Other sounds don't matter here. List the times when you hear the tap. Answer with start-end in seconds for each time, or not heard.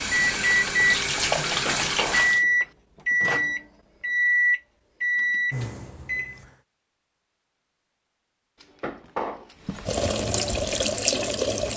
0.0-2.5, 9.7-11.7.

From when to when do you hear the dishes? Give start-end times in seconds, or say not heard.
1.4-2.7, 8.6-9.9.